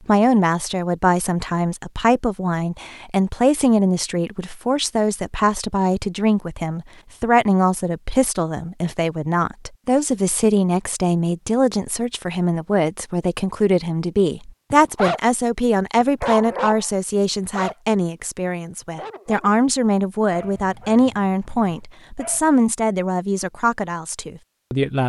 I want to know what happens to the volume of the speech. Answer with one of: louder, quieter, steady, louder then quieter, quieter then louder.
steady.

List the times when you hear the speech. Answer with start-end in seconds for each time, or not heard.
0.1-25.0.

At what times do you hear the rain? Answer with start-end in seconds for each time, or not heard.
not heard.